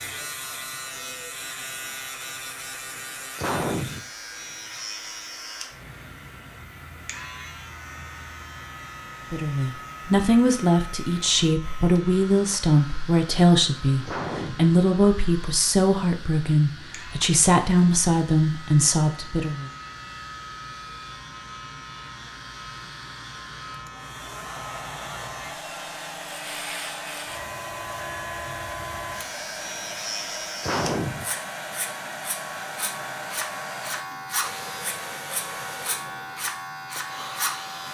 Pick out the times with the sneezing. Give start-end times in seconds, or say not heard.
3.0-4.0, 14.1-14.7, 30.2-31.2.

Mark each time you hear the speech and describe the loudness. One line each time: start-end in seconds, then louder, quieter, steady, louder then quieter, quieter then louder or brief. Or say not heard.
9.3-19.6 steady.